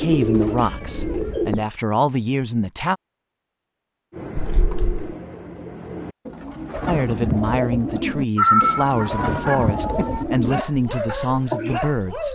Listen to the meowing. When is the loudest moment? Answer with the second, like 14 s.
9 s.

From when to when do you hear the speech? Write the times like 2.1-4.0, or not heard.
0.0-3.0, 6.8-12.3.